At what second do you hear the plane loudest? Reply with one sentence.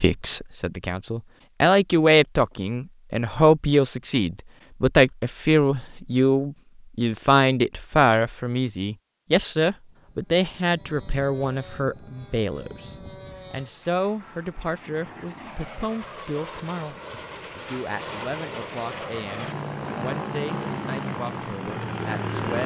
The loudest moment of the plane is at 22 seconds.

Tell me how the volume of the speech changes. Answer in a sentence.
The volume of the speech goes down.